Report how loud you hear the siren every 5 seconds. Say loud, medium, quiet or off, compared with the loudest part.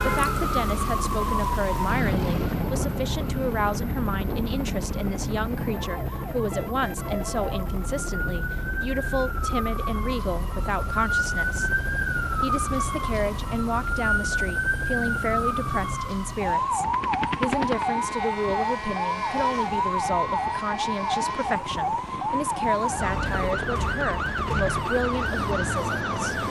loud, medium, loud, loud, loud, loud.